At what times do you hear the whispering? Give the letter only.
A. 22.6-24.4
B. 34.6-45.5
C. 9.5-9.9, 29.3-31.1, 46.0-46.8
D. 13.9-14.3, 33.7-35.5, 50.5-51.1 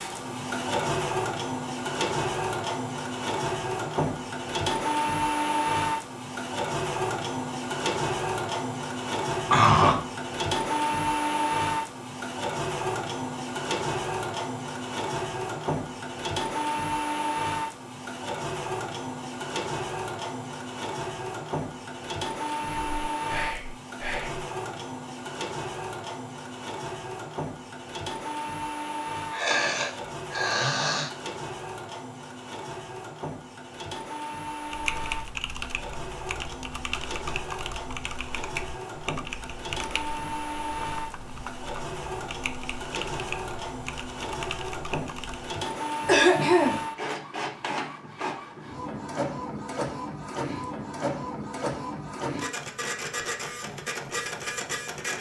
A.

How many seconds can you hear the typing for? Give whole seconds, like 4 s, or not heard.
11 s.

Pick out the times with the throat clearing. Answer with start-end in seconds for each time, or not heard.
9.5-9.9, 29.3-31.1, 46.0-46.8.